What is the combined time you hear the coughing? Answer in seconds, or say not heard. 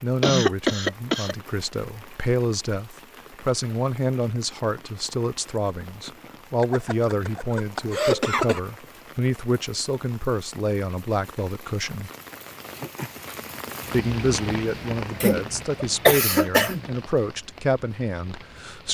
5 s.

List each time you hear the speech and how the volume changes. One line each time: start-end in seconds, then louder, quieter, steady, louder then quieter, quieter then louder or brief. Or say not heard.
0.0-12.1 steady
13.9-18.9 steady.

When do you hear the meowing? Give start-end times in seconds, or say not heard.
not heard.